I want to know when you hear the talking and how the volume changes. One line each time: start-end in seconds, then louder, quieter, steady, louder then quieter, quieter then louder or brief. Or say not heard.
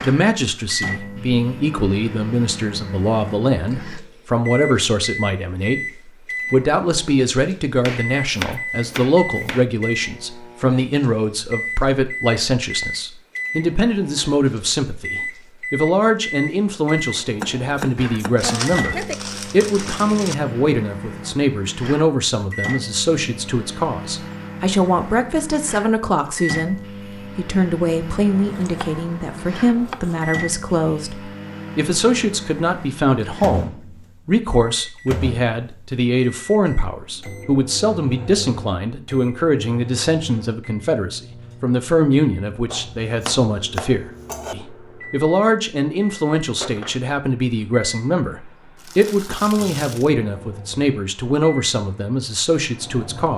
0.0-53.3 steady.